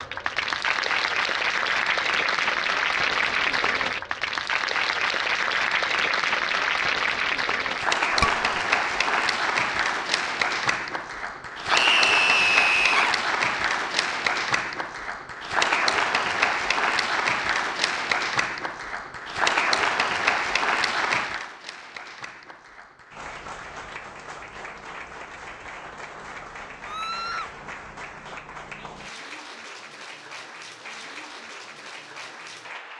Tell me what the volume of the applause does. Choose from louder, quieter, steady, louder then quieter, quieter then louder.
quieter.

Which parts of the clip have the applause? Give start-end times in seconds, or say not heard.
0.0-32.9.